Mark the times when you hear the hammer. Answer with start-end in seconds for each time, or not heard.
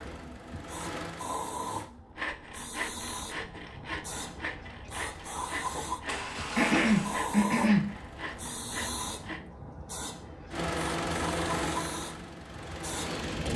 not heard.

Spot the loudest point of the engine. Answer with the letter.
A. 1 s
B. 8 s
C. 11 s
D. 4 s
C.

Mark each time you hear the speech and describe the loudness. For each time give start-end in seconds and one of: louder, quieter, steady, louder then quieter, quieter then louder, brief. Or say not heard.
not heard.